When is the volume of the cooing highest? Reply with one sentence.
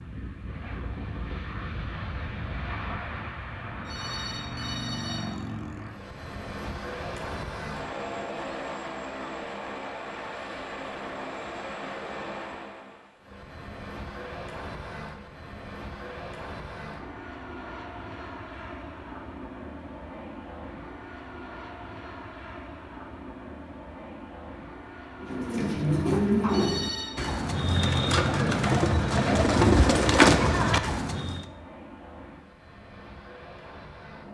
The loudest moment of the cooing is at 30 seconds.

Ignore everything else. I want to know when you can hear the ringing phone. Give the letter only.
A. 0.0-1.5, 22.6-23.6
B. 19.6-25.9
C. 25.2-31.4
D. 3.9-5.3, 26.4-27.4
D.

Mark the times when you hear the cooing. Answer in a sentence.
The cooing can be heard from 25.2 to 31.4 s.